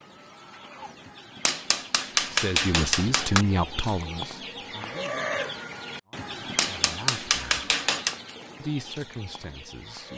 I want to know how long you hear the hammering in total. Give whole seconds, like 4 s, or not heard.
4 s.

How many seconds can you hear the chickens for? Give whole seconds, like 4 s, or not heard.
10 s.